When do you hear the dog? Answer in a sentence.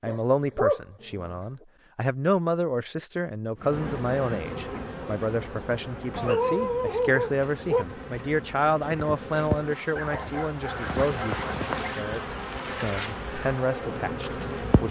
The dog can be heard from 0.1 to 1.4 s, from 6.2 to 7.8 s and from 9.9 to 11.9 s.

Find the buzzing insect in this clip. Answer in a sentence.
You can hear the buzzing insect from 3.5 to 14.8 s.